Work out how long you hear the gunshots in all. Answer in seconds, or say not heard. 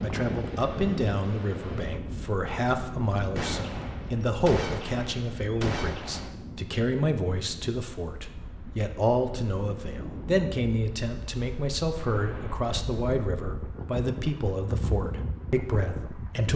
3 s.